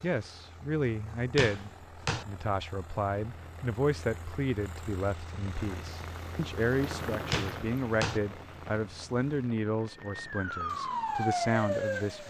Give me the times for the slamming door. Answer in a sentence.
The slamming door can be heard from 1.4 to 2.2 s and from 7.3 to 8.2 s.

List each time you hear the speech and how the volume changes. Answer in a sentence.
The speech can be heard from 0.0 to 12.2 s, at a steady volume.